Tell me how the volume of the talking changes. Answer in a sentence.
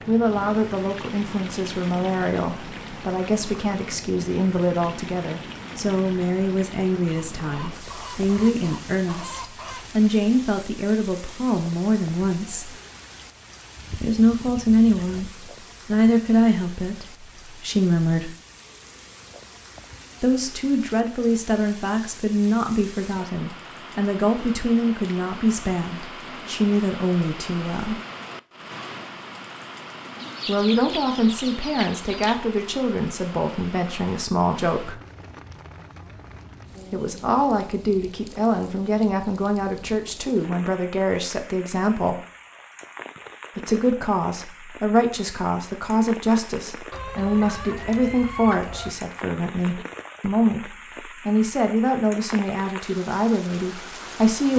The volume of the talking stays about the same.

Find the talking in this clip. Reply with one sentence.
You can hear the talking from 0.1 to 12.7 s, from 14.0 to 18.4 s, from 20.2 to 28.0 s, from 30.4 to 35.0 s, from 36.9 to 42.2 s and from 43.5 to 54.5 s.